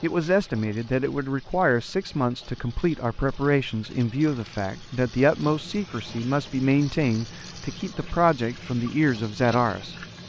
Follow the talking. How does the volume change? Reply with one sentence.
The loudness of the talking stays about the same.